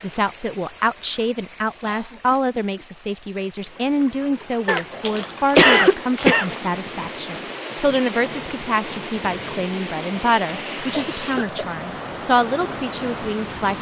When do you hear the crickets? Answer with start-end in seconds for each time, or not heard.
not heard.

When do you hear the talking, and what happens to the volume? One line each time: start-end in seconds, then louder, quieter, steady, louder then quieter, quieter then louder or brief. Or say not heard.
0.0-13.7 steady.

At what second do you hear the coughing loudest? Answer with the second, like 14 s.
6 s.